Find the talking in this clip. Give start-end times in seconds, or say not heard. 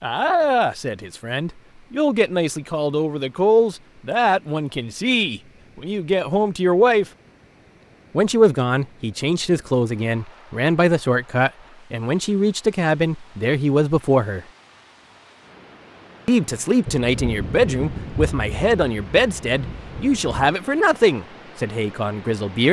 0.0-7.0, 8.1-14.4, 16.2-22.6.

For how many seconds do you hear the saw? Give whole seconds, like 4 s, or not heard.
not heard.